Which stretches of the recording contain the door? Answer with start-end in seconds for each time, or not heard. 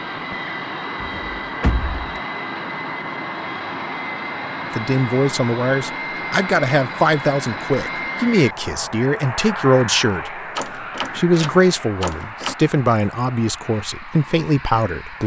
1.0-2.0, 10.6-12.6.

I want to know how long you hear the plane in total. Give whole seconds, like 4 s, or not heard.
15 s.